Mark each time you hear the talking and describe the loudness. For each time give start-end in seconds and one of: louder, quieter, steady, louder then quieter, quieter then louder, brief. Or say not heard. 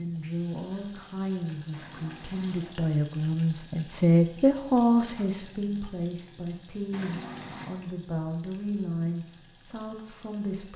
0.0-10.7 louder then quieter.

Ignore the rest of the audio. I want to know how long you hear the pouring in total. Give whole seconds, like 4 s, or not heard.
2 s.